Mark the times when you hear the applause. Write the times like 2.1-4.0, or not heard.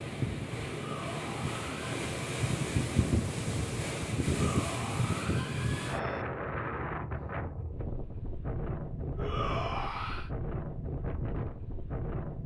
not heard.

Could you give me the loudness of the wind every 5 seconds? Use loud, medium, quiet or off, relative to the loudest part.
loud, loud, medium.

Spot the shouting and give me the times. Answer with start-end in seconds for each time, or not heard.
0.7-1.9, 4.2-6.2, 9.2-10.3.